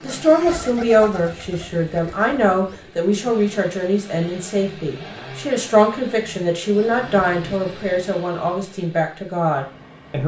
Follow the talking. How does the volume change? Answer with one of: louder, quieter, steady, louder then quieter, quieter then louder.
steady.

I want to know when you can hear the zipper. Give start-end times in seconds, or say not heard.
not heard.